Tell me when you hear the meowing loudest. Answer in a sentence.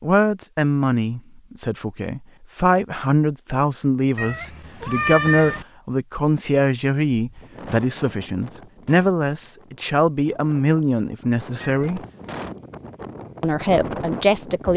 The loudest moment of the meowing is at 5 seconds.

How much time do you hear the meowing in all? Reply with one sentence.
The meowing can be heard for 2 seconds in total.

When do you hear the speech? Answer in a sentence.
You can hear the speech from 0.0 to 12.0 s and from 13.4 to 14.7 s.